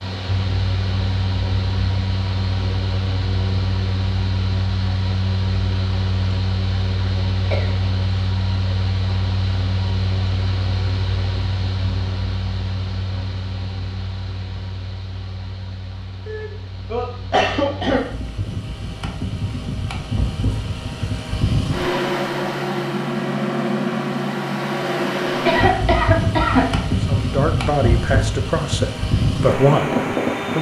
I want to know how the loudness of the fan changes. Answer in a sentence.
The volume of the fan goes down, then up.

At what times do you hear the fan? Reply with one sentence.
You can hear the fan from 0.0 to 30.5 s.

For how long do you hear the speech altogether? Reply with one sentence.
You can hear the speech for 3 seconds altogether.